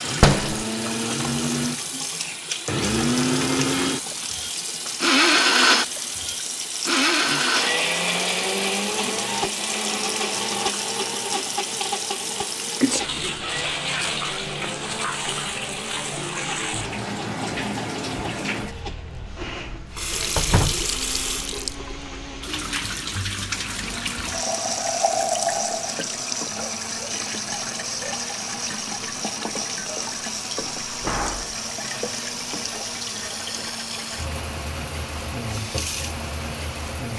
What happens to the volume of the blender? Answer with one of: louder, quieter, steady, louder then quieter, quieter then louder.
quieter.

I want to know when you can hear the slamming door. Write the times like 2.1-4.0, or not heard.
0.2-0.7, 20.4-20.9, 30.9-31.6.